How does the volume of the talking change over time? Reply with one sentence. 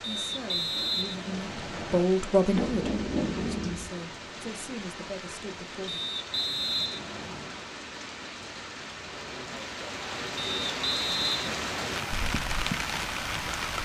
The volume of the talking goes up, then down.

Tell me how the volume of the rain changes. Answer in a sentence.
The loudness of the rain goes up.